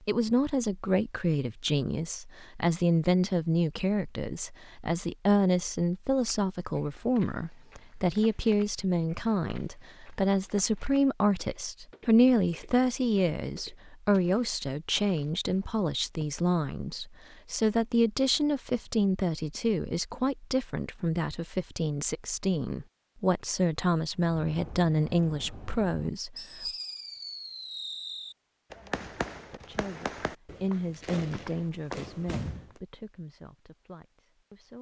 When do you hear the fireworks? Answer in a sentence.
You can hear the fireworks from 24.1 to 32.8 s.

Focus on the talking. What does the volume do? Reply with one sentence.
The loudness of the talking goes down.